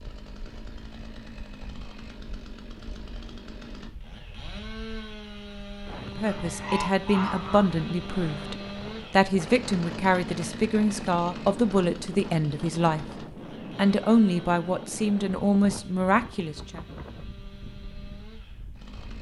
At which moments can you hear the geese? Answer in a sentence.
You can hear the geese from 6.2 to 8.2 s.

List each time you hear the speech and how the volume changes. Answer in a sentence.
The speech can be heard from 6.2 to 16.8 s, at a steady volume.